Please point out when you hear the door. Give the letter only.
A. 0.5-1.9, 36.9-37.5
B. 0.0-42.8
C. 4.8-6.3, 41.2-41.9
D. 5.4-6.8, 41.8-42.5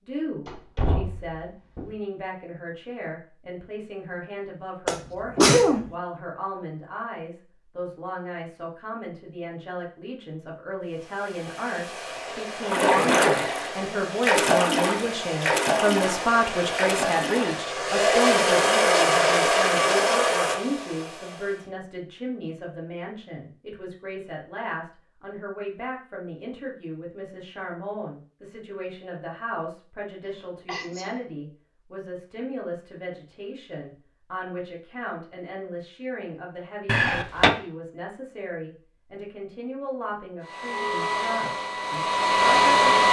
A.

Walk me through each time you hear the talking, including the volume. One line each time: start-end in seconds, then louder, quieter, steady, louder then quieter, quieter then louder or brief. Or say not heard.
0.0-42.8 louder then quieter.